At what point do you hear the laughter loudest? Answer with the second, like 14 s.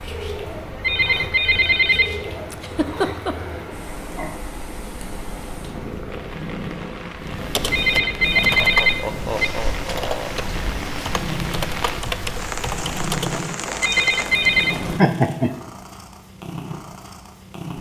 15 s.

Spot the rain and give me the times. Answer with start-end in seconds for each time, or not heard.
0.0-15.1.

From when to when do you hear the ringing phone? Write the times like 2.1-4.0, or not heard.
0.7-2.1, 7.6-9.5, 13.7-14.8.